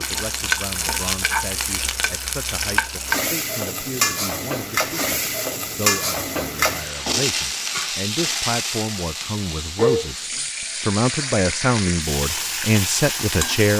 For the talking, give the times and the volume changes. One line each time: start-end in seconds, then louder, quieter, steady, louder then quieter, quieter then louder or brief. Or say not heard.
0.0-13.7 louder.